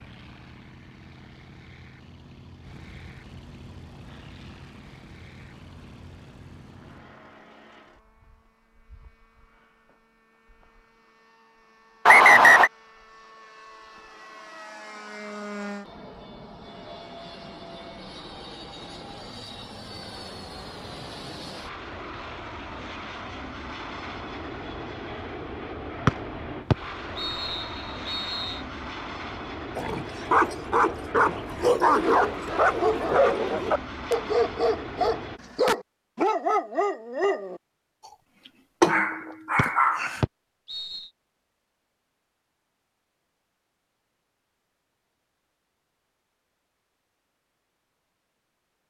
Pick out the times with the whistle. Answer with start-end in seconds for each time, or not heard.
12.1-12.7, 26.1-28.6, 39.5-41.1.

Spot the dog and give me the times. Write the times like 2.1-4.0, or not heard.
29.8-37.6, 38.8-40.2.